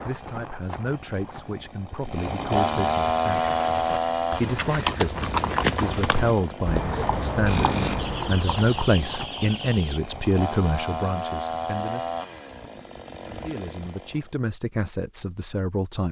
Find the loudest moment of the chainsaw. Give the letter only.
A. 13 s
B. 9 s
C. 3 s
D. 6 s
C.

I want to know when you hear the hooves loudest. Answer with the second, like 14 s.
6 s.